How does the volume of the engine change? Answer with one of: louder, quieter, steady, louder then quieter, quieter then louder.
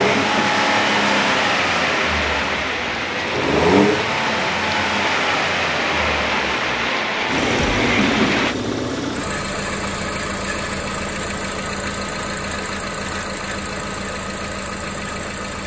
quieter.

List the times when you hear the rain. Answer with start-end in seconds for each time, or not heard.
0.0-8.6.